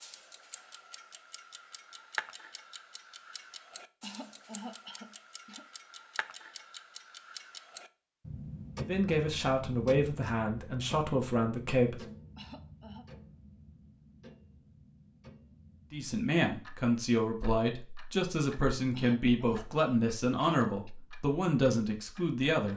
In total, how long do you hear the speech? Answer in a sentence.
The speech can be heard for 10 seconds in total.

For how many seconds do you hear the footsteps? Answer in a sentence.
The footsteps can't be heard in this clip.